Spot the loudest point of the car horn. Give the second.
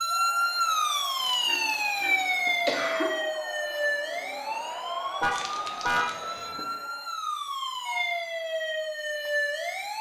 6 s.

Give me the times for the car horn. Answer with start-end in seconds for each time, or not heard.
1.4-2.2, 5.2-6.6.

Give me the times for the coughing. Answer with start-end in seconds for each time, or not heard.
1.2-3.1, 5.3-6.7.